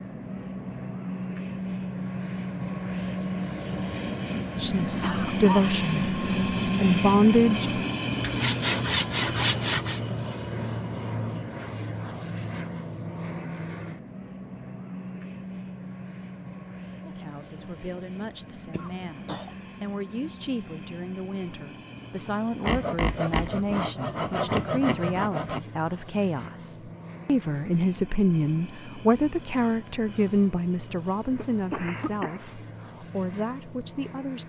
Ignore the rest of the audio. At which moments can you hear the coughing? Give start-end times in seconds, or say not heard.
5.0-5.7, 18.7-19.6, 31.4-32.4.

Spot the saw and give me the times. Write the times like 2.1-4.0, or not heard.
8.2-10.0, 22.6-25.6.